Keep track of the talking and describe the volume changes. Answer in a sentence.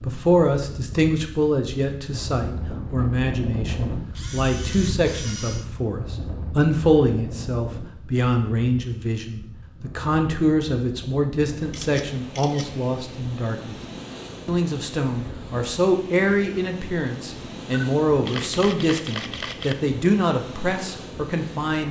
The loudness of the talking stays about the same.